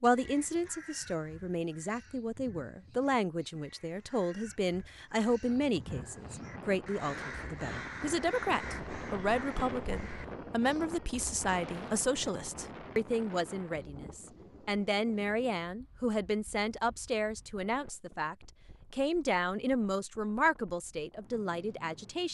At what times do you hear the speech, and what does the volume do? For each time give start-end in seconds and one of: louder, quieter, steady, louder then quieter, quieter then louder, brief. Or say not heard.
0.0-22.2 steady.